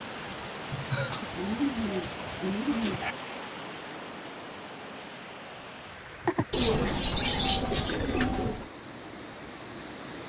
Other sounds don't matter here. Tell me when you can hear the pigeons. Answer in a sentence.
You can hear the pigeons from 1.1 to 3.1 s and from 6.5 to 8.7 s.